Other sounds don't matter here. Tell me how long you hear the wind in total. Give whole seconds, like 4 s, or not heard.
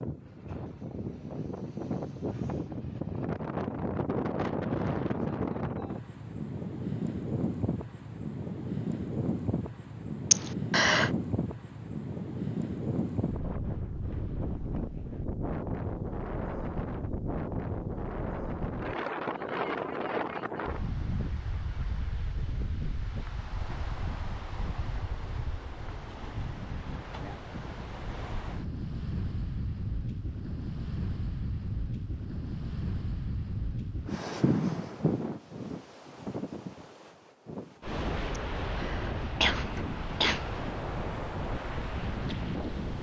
43 s.